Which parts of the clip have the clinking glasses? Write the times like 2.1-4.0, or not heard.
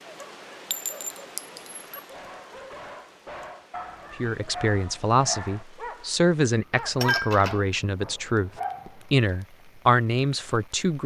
0.7-1.8, 6.7-7.8.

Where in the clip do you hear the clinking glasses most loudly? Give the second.
7 s.